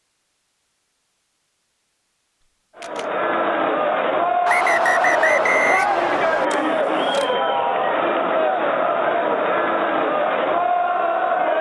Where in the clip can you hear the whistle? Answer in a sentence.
You can hear the whistle from 4.5 to 6.5 s.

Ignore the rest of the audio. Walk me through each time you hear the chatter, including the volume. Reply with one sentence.
You can hear the chatter from 2.8 to 11.5 s, at a steady volume.